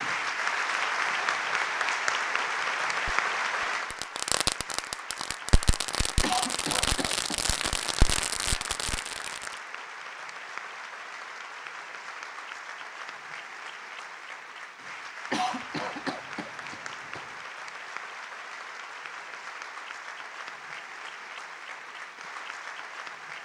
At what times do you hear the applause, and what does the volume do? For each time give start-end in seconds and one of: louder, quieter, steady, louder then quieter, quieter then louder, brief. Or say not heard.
0.0-23.4 quieter.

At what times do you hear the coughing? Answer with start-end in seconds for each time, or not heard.
6.2-8.2, 15.3-17.4.